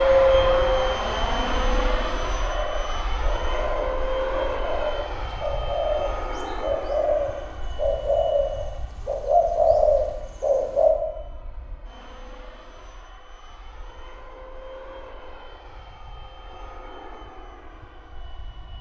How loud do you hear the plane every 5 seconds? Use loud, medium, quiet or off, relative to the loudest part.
loud, quiet, quiet, quiet.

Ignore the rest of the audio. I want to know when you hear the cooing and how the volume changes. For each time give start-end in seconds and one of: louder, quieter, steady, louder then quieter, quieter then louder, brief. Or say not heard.
2.4-10.9 louder.